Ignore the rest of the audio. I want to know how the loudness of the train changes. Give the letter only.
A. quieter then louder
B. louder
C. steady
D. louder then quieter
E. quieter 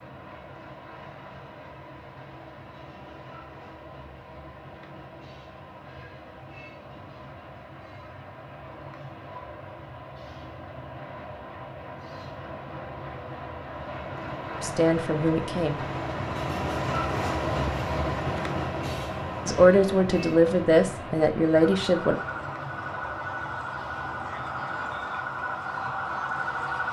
D.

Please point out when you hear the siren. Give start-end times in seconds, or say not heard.
21.6-26.8.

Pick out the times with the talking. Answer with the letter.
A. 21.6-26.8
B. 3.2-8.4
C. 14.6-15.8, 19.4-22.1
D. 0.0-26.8
C.